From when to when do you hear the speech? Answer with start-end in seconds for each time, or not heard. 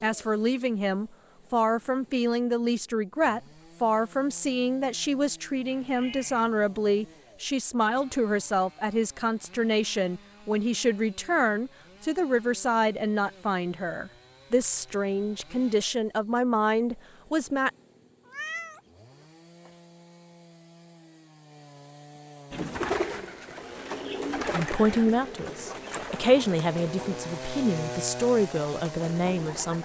0.0-17.7, 24.5-29.7.